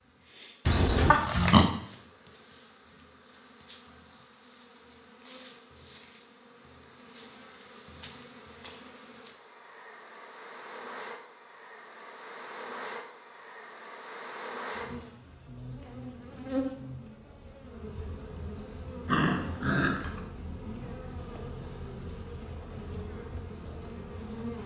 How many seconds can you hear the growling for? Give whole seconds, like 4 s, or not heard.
2 s.